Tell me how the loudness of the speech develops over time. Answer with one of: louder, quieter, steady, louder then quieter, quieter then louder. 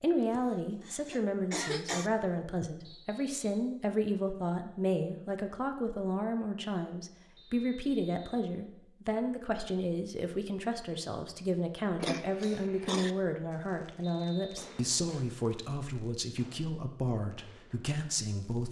steady.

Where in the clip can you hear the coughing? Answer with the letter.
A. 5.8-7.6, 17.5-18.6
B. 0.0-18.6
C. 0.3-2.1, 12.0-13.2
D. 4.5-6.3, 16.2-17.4
C.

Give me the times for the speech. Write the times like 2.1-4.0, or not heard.
0.0-18.6.